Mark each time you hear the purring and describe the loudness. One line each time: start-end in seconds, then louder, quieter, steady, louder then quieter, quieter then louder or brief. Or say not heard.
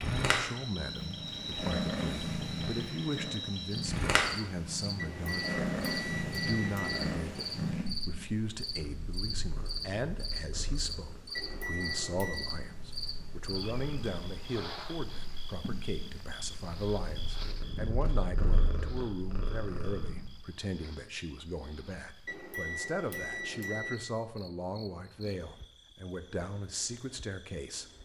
0.0-20.4 quieter then louder.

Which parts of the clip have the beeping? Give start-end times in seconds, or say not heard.
5.0-7.0, 11.3-12.6, 22.2-24.0.